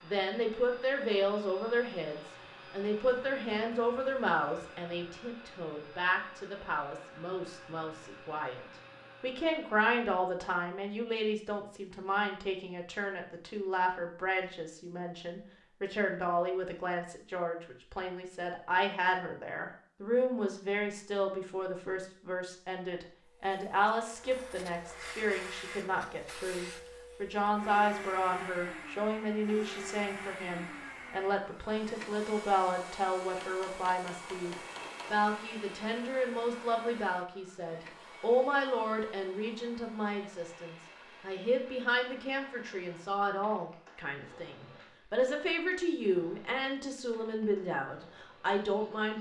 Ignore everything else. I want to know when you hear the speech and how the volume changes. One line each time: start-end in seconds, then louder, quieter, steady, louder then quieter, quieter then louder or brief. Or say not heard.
0.0-49.1 steady.